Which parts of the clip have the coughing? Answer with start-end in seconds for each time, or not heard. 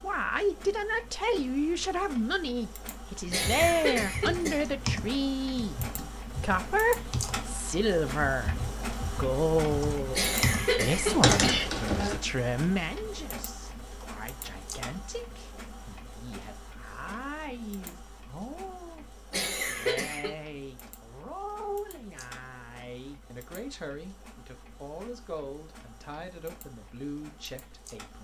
3.3-4.7, 10.1-11.7, 19.3-20.4.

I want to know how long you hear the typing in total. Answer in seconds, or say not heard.
9 s.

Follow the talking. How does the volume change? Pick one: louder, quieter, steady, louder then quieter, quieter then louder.
quieter.